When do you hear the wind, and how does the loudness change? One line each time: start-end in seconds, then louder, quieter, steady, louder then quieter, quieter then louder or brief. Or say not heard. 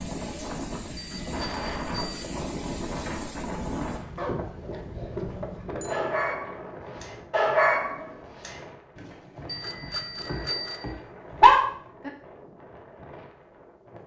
0.0-14.0 quieter.